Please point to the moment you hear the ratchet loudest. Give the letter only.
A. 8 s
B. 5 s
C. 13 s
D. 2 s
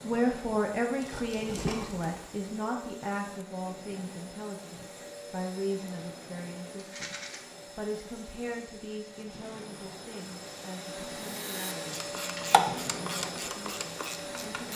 C.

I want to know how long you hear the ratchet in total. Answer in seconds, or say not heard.
3 s.